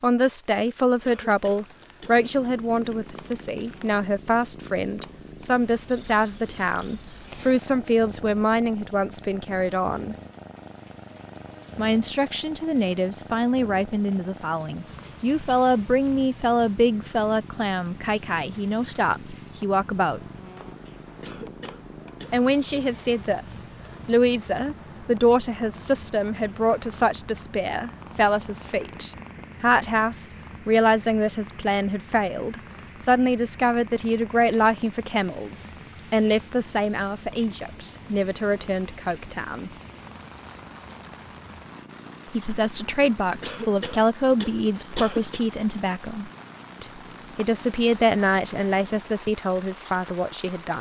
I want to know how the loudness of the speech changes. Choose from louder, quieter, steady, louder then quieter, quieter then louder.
steady.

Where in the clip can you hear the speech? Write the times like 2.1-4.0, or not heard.
0.0-10.2, 11.8-20.2, 22.3-39.7, 42.3-50.7.